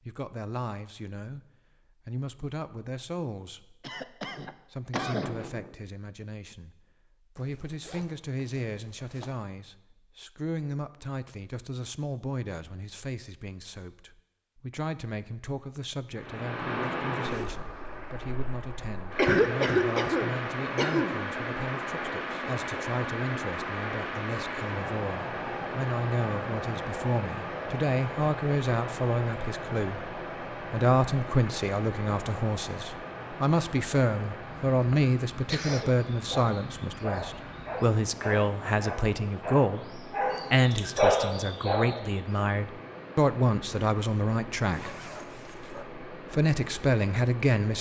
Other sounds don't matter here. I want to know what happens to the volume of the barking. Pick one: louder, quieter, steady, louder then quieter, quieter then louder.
louder.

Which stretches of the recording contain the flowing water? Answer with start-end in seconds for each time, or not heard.
16.1-47.7.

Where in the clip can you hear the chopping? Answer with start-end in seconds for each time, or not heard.
not heard.